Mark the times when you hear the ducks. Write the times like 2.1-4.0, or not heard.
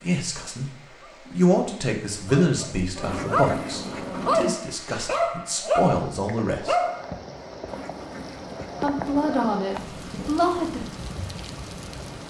3.0-4.5, 7.7-9.6.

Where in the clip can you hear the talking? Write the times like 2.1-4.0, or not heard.
0.0-6.8, 8.8-10.8.